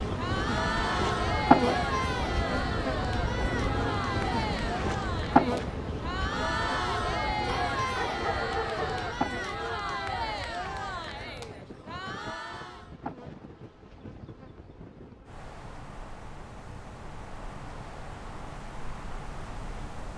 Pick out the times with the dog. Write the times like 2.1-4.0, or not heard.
7.5-9.2.